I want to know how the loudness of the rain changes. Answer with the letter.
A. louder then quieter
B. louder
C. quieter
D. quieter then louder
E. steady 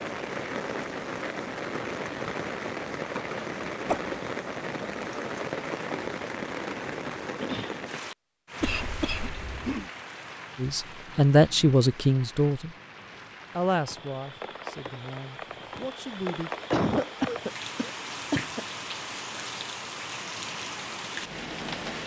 D.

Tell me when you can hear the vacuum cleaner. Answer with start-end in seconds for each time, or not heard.
not heard.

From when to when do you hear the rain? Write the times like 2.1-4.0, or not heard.
0.0-22.0.